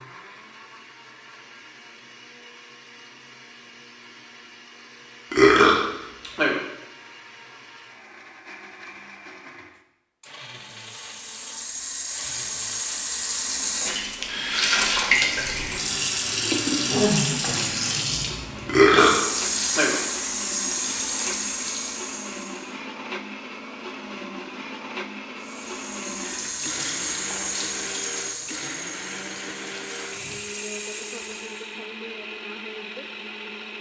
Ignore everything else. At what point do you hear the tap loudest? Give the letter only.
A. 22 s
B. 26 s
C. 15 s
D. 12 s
C.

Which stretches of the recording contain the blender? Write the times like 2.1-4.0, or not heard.
0.0-33.7.